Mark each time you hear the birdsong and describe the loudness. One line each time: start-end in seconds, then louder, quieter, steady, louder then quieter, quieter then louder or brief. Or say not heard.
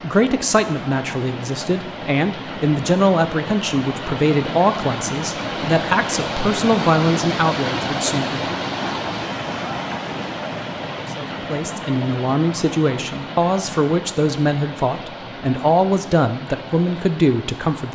not heard.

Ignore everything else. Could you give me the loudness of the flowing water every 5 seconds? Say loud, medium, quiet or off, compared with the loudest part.
medium, loud, medium, medium.